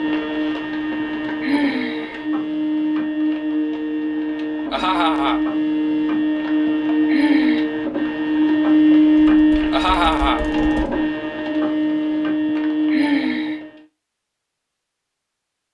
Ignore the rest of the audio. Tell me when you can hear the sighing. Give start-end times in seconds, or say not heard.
1.0-2.2, 6.7-7.7, 12.4-13.6.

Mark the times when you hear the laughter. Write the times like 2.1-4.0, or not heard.
4.7-5.4, 9.7-10.4.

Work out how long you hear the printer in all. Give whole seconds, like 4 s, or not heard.
14 s.